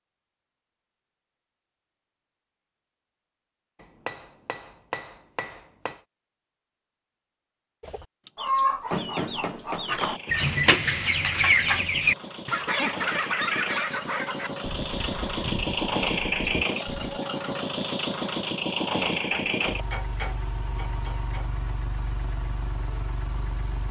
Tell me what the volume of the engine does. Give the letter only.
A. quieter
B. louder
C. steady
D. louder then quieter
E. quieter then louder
D.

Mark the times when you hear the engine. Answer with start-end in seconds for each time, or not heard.
10.0-23.8.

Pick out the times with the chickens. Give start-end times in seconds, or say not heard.
7.8-17.2.